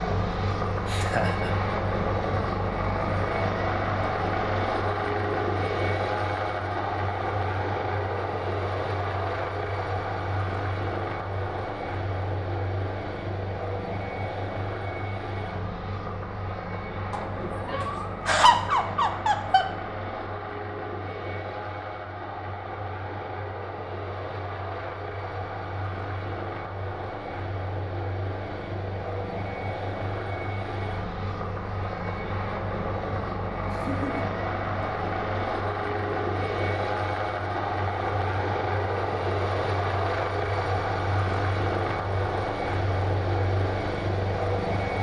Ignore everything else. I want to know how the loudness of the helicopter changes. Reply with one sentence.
The loudness of the helicopter goes down, then up.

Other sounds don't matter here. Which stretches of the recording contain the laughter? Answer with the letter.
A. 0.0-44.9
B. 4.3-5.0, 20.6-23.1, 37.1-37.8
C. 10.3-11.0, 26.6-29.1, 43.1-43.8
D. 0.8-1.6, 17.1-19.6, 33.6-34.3
D.